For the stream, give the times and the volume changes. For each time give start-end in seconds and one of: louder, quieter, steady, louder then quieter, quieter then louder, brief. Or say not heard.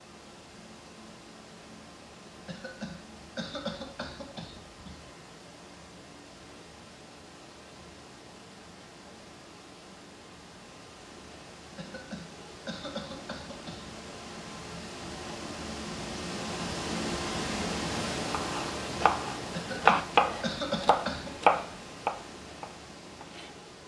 0.0-23.8 louder then quieter.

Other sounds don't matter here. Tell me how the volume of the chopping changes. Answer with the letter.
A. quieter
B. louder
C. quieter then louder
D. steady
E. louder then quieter
E.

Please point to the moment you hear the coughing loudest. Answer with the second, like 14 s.
21 s.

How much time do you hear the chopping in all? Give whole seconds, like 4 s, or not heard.
5 s.